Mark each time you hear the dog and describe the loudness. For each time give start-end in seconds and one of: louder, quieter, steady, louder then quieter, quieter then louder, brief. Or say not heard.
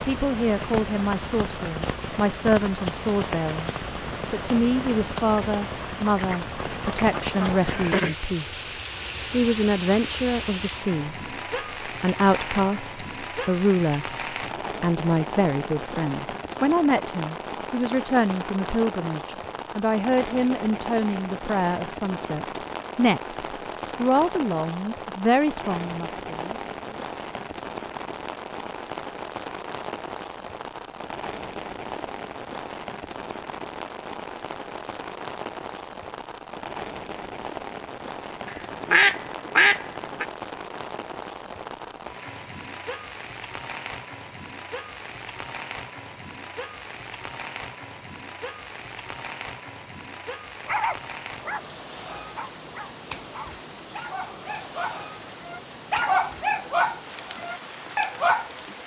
50.6-58.5 quieter then louder.